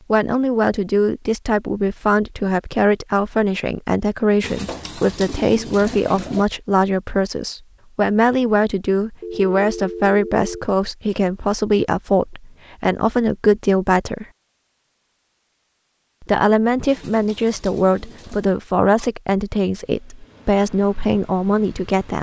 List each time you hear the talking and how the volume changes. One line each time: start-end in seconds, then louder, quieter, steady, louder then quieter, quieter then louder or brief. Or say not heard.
0.1-14.2 steady
16.2-22.1 steady.